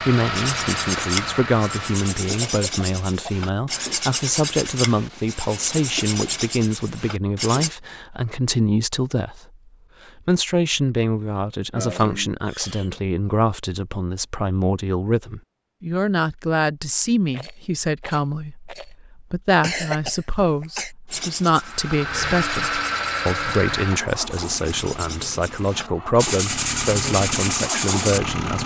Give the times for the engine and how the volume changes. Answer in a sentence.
You can hear the engine briefly from 0.0 to 2.1 s; and from 21.5 to 28.6 s, getting quieter then louder.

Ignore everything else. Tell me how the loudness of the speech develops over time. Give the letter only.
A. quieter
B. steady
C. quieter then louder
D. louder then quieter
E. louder
B.